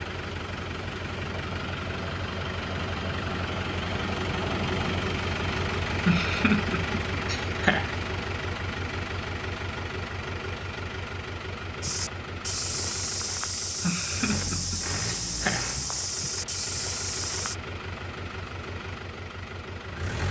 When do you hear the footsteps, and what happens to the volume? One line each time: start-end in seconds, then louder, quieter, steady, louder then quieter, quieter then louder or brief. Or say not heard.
11.8-17.6 steady.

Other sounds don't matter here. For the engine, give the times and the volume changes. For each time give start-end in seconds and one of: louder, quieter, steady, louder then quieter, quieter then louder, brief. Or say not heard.
0.0-20.2 quieter.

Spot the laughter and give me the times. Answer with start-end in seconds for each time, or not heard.
6.0-7.9, 13.8-15.7.